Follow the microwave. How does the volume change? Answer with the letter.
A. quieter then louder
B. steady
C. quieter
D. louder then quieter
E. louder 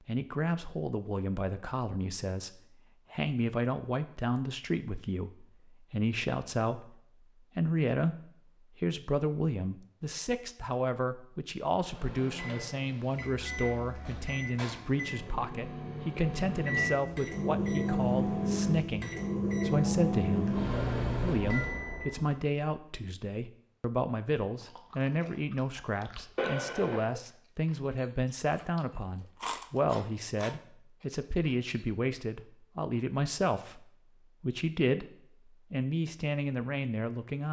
E.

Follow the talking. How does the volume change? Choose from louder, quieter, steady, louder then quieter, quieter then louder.
steady.